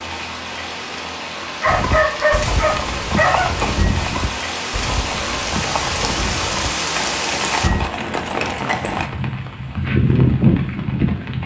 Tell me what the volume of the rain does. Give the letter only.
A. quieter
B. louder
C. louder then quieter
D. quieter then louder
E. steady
B.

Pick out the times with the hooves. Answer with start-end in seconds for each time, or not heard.
1.6-9.1.